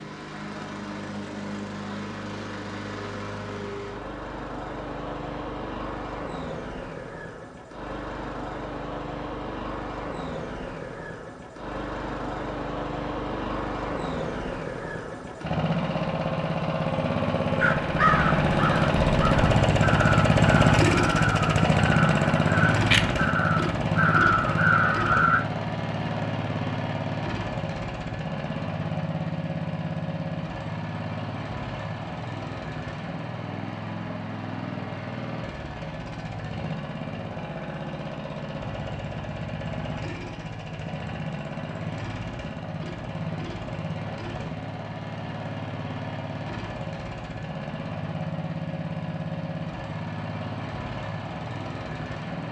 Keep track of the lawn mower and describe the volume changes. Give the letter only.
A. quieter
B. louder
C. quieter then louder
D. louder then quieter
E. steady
D.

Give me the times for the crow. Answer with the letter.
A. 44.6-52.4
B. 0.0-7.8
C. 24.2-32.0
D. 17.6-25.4
D.